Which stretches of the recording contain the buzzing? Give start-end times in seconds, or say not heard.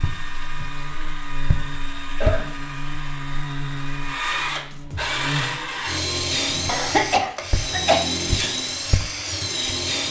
0.0-7.2.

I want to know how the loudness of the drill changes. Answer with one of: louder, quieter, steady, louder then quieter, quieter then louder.
louder.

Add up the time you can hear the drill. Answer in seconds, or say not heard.
10 s.